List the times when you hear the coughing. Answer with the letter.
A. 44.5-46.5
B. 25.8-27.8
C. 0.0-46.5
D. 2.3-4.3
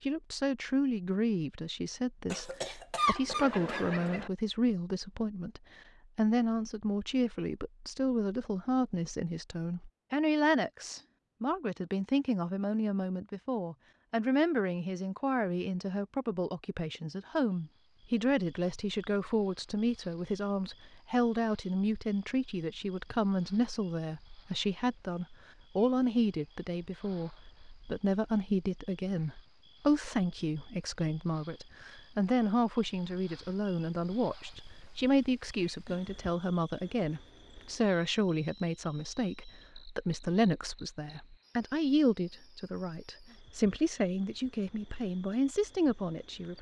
D.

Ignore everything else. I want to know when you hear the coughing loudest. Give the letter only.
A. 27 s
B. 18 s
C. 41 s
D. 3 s
D.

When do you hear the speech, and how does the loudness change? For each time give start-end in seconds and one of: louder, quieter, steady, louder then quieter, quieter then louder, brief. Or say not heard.
0.0-46.5 steady.